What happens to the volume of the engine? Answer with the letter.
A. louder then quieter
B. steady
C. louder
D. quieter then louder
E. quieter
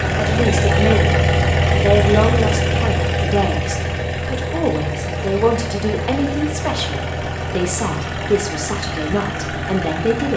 E.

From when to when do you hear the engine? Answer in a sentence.
You can hear the engine from 0.0 to 10.3 s.